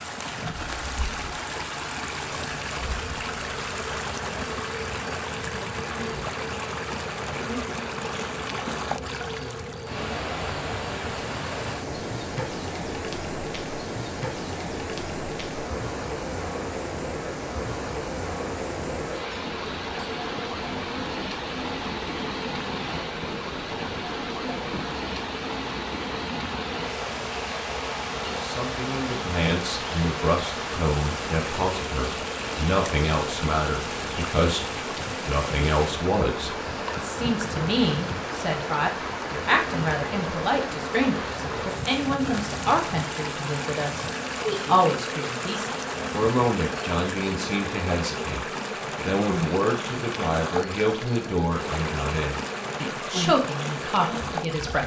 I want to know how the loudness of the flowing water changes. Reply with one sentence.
The loudness of the flowing water stays about the same.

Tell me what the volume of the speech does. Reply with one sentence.
The volume of the speech stays about the same.